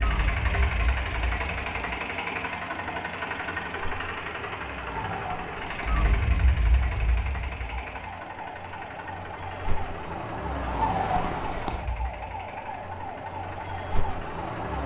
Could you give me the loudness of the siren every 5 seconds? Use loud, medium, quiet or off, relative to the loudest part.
medium, medium, loud.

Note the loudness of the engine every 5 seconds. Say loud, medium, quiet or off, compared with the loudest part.
loud, medium, quiet.